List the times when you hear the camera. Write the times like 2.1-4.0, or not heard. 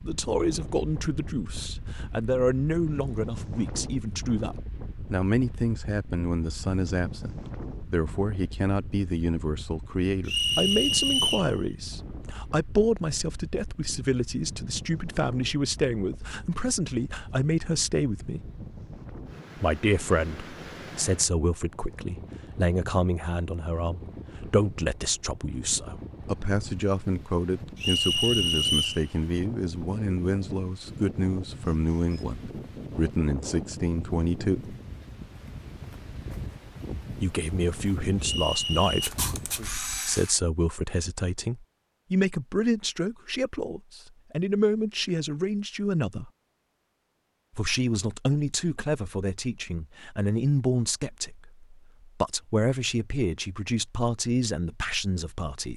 39.0-40.4.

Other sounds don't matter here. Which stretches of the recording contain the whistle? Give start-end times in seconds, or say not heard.
10.2-11.5, 27.8-29.1, 38.2-39.1.